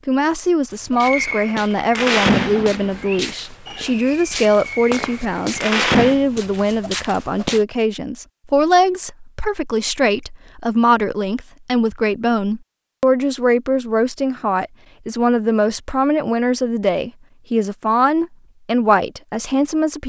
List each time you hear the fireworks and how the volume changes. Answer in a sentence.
The fireworks can be heard from 0.9 to 6.2 s, getting quieter then louder.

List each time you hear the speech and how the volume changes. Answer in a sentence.
The speech can be heard from 0.1 to 20.0 s, at a steady volume.